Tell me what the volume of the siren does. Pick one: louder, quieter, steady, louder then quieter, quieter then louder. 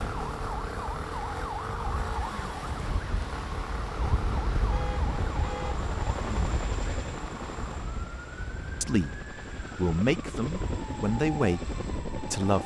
quieter.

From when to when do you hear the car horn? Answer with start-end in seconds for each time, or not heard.
4.7-5.8.